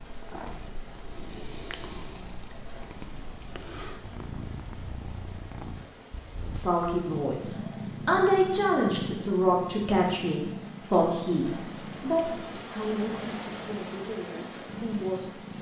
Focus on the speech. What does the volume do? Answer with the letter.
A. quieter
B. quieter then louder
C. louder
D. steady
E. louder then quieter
A.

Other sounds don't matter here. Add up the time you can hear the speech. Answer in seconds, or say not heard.
9 s.